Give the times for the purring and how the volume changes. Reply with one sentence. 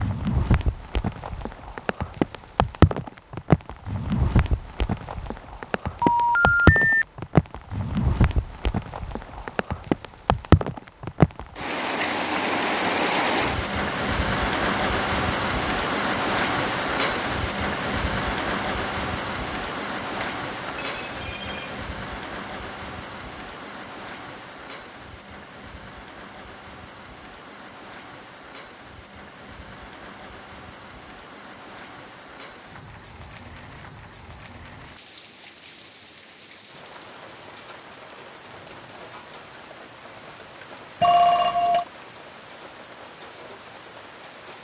The purring can't be heard in this clip.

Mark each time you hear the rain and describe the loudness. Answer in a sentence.
You can hear the rain from 0.0 to 44.5 s, getting quieter.